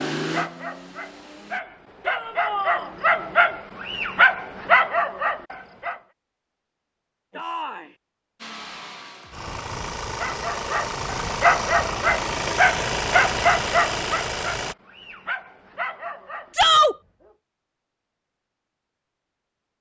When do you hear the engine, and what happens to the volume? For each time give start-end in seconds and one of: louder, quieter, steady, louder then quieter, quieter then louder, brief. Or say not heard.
0.0-1.6 brief
8.4-14.8 louder.